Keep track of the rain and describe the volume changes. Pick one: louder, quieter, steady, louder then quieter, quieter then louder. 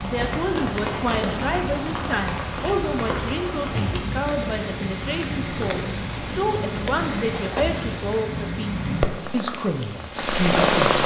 steady.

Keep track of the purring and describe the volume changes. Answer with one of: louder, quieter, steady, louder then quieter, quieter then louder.
louder.